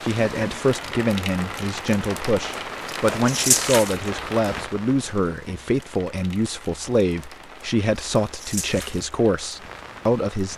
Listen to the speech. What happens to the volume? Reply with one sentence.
The volume of the speech stays about the same.